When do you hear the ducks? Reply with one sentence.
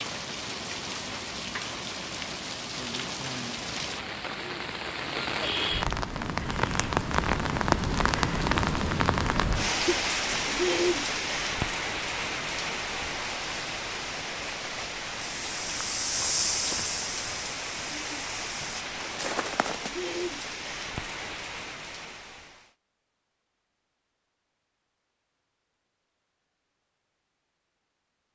You can't hear the ducks here.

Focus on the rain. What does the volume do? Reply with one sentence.
The loudness of the rain goes up, then down.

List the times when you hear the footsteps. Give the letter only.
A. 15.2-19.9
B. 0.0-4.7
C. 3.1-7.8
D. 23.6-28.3
A.